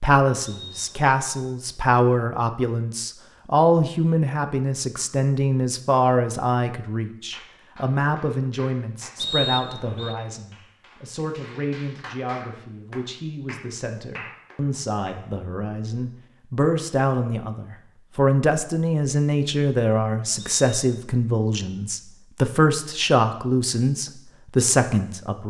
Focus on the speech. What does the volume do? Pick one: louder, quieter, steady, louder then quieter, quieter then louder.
quieter then louder.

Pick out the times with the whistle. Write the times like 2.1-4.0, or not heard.
0.5-1.4, 9.2-10.2, 20.4-21.0.